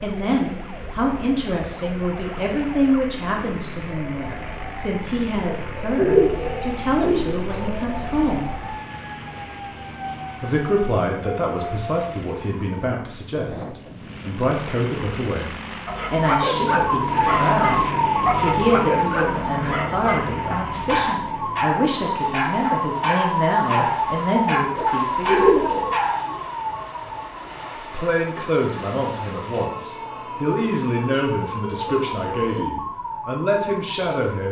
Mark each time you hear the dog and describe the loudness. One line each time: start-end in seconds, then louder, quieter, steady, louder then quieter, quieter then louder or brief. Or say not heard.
15.8-26.3 steady.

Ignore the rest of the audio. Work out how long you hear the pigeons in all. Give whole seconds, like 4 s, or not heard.
4 s.